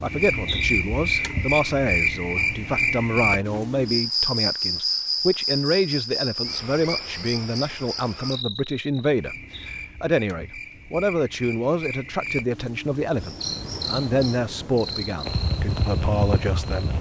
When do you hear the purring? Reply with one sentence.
You can't hear the purring here.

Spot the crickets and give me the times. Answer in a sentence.
The crickets can be heard from 0.0 to 16.9 s.